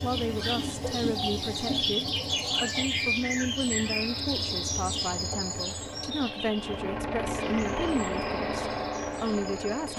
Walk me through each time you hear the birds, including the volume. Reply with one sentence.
The birds can be heard from 0.0 to 9.9 s, getting quieter.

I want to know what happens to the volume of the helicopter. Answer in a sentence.
The loudness of the helicopter goes up.